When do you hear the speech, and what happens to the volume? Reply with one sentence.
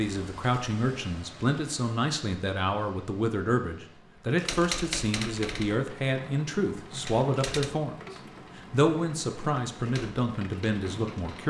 The speech can be heard from 0.0 to 8.0 s, at a steady volume; and briefly from 8.6 to 11.4 s.